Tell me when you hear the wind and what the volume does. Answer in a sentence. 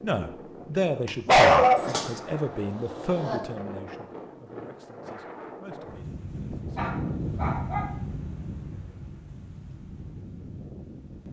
The wind can be heard from 0.0 to 11.2 s, getting louder then quieter.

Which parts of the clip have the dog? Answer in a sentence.
The dog can be heard from 1.1 to 2.0 s and from 6.8 to 8.0 s.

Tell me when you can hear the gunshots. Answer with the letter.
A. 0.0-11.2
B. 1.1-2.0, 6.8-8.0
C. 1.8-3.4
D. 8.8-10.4
C.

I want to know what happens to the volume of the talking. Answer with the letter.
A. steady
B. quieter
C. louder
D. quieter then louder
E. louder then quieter
B.